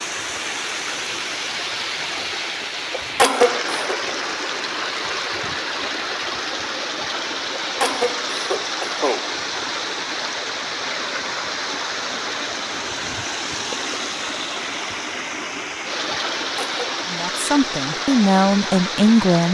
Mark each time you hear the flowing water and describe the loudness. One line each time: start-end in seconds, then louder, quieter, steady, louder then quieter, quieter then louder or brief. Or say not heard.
0.0-19.4 steady.